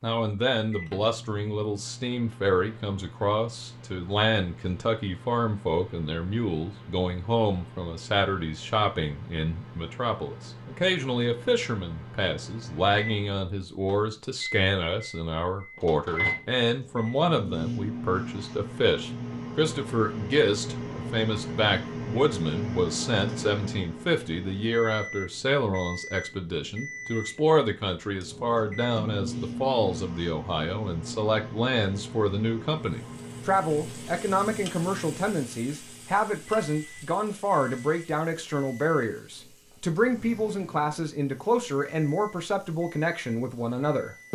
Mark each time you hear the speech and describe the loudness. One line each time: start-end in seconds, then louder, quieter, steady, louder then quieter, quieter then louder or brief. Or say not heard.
0.0-44.3 steady.